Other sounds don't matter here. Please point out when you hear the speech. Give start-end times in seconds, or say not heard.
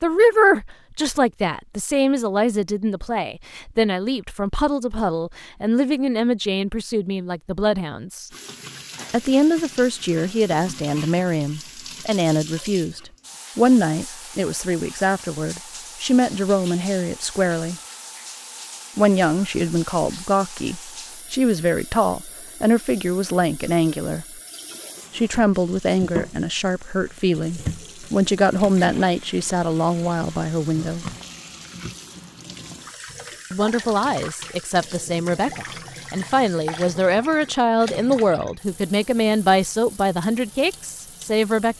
0.0-8.3, 9.1-17.8, 18.9-24.2, 25.1-31.1, 33.5-41.7.